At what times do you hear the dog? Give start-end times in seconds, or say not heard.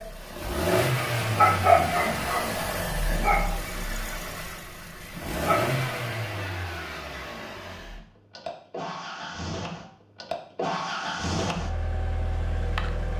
1.2-5.8.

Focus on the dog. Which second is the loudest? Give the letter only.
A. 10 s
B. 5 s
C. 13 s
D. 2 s
D.